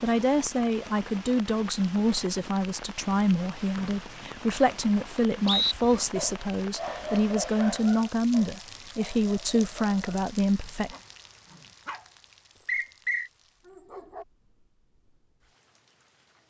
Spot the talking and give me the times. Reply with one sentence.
The talking can be heard from 0.0 to 10.9 s.